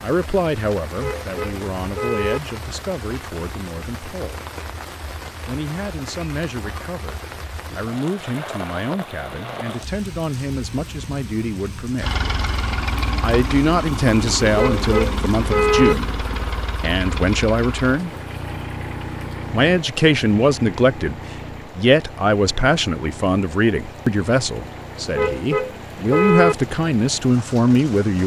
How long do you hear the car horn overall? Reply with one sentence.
The car horn can be heard for 4 seconds in total.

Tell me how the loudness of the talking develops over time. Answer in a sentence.
The volume of the talking goes up.